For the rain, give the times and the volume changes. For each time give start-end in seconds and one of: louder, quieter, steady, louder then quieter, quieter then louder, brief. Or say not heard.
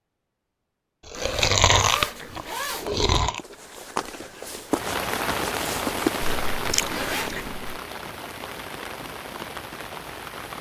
4.7-10.5 quieter.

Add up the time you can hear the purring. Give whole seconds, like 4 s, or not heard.
not heard.